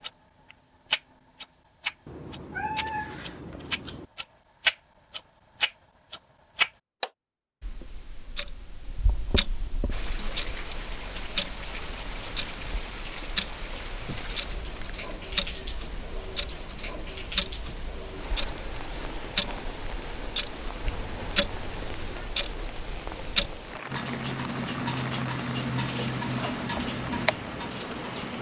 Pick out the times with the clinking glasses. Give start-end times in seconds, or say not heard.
not heard.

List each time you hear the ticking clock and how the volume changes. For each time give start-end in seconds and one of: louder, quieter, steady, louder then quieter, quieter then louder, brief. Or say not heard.
0.0-28.3 quieter then louder.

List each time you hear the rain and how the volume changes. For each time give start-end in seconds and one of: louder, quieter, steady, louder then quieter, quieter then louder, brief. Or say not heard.
9.9-28.3 steady.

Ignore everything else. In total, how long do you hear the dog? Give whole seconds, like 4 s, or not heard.
not heard.